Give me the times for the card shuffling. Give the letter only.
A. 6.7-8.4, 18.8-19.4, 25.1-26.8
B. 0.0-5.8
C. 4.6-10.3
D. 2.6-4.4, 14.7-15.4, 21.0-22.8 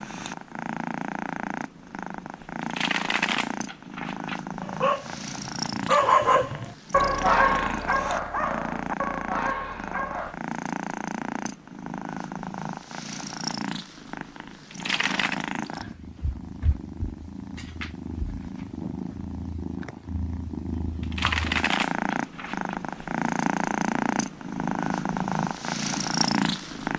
D.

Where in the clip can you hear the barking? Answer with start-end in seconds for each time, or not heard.
4.6-10.3.